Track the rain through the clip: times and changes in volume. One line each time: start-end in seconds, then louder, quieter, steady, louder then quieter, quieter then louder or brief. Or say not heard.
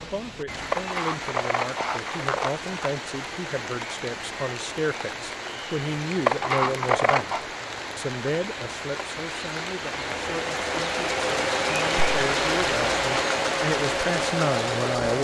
0.0-15.2 louder.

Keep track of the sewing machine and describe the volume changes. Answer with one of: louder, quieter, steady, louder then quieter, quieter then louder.
steady.